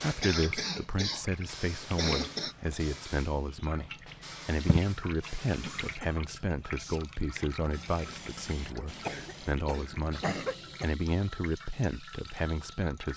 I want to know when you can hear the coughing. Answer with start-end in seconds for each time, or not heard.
0.2-2.5, 5.6-6.2, 9.0-10.8.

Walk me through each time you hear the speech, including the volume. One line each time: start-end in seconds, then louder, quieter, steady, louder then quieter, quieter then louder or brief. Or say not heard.
0.0-13.1 steady.